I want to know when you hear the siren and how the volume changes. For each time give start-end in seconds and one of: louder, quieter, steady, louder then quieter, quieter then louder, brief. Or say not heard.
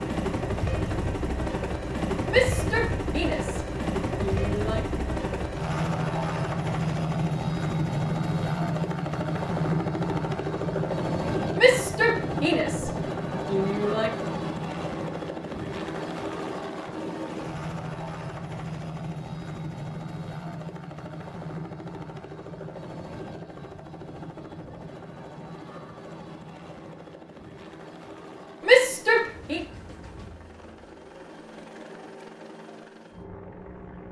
not heard.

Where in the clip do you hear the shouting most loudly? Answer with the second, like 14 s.
29 s.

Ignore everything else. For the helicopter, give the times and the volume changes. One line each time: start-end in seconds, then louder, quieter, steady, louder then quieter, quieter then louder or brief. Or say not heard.
0.0-34.0 quieter.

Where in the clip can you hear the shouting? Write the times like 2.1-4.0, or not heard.
2.2-4.8, 11.6-14.1, 28.6-29.6.